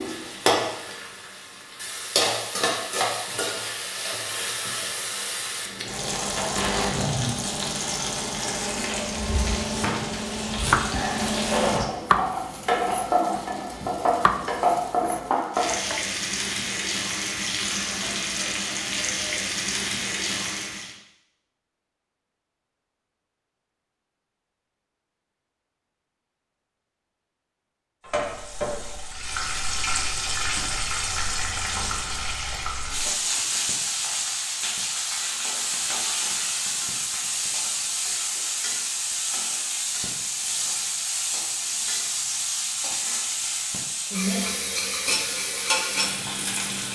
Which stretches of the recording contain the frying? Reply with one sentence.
You can hear the frying from 0.0 to 20.9 s and from 28.1 to 46.8 s.